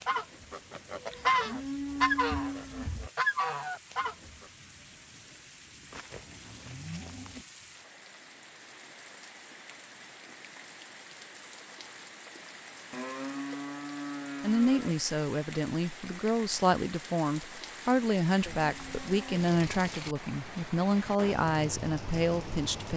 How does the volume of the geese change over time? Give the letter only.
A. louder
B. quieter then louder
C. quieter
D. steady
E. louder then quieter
E.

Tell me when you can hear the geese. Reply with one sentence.
The geese can be heard from 0.0 to 4.5 s.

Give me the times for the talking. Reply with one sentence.
You can hear the talking from 14.4 to 22.9 s.